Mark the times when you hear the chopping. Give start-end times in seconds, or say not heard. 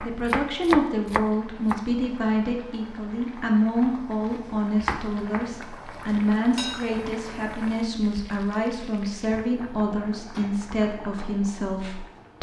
0.0-1.8, 3.3-5.5.